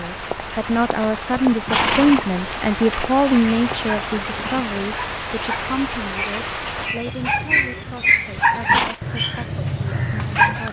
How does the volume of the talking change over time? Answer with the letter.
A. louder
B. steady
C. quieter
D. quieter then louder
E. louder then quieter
C.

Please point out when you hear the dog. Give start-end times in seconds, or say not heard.
3.4-10.6.